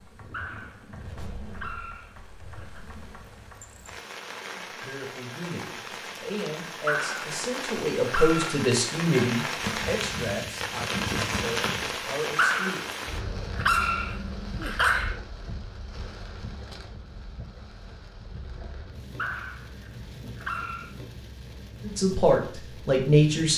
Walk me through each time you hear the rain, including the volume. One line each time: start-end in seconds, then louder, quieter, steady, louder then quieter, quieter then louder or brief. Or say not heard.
0.0-23.5 louder then quieter.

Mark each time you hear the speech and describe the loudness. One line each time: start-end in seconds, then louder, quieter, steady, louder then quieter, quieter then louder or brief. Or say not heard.
4.6-12.9 louder then quieter
21.9-23.5 brief.